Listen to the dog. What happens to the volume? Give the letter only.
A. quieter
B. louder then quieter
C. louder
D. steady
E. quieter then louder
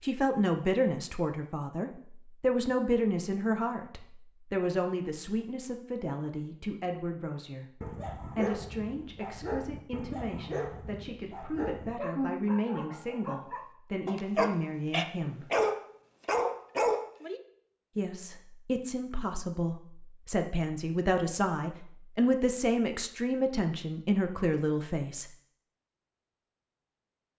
C.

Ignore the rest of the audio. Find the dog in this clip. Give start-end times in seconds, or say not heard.
7.8-17.4.